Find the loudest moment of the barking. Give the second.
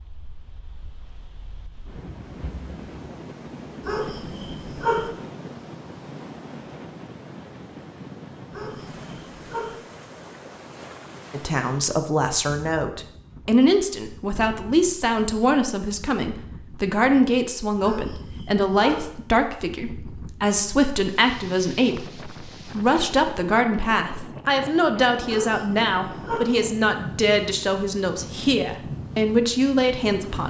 5 s.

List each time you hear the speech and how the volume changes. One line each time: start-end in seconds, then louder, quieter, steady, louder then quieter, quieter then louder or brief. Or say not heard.
11.3-30.4 steady.